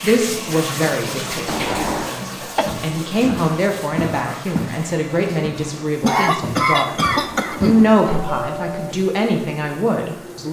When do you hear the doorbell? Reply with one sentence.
The doorbell can be heard from 1.4 to 2.1 s and from 7.1 to 8.9 s.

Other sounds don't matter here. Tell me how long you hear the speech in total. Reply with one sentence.
The speech can be heard for 10 seconds in total.